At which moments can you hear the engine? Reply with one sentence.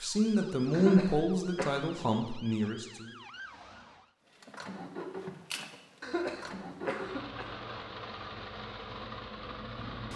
You can hear the engine from 4.2 to 10.1 s.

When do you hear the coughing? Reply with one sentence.
The coughing can be heard from 0.7 to 1.8 s and from 6.0 to 7.5 s.